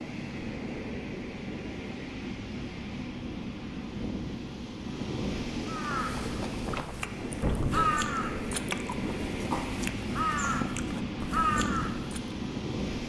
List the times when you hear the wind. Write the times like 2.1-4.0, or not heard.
0.0-13.0.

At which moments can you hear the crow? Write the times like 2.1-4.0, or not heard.
5.7-12.3.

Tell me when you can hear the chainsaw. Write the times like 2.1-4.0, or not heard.
not heard.